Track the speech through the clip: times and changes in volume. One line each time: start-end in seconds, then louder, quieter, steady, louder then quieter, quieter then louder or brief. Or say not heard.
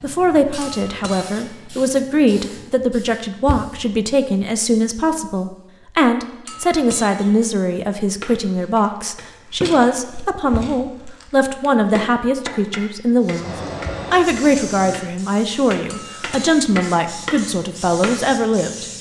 0.0-18.9 steady.